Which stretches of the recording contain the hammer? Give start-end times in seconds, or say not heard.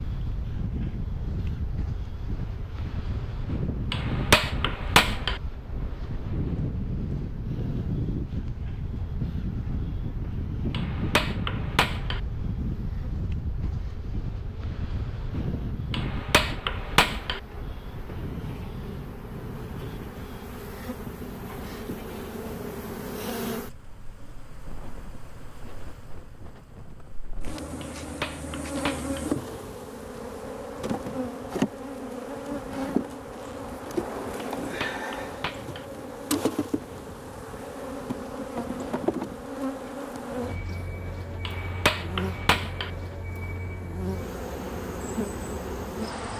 3.9-5.4, 10.7-12.2, 15.9-17.4, 27.8-29.2, 34.6-35.9, 41.5-42.9.